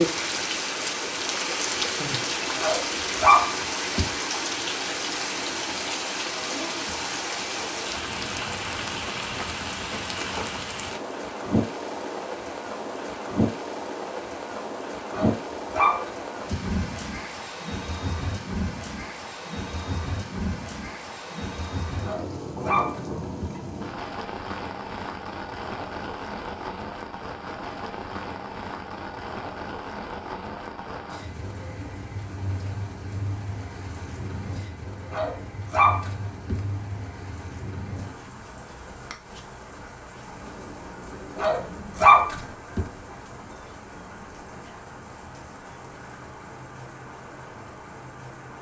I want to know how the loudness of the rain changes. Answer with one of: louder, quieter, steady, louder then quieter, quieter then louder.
quieter.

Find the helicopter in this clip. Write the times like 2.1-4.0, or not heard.
not heard.